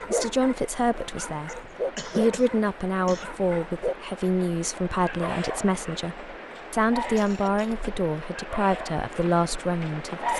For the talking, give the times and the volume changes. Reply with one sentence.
The talking can be heard from 0.1 to 10.3 s, at a steady volume.